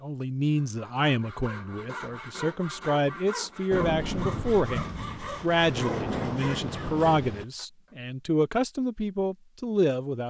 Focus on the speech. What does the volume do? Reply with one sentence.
The loudness of the speech stays about the same.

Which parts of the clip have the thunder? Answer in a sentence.
You can hear the thunder from 3.7 to 7.5 s.